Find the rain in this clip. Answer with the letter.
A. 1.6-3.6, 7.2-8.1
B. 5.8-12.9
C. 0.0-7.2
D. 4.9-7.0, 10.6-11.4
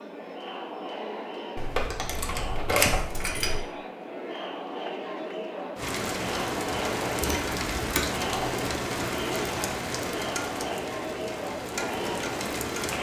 B.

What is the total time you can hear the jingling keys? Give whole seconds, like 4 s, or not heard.
3 s.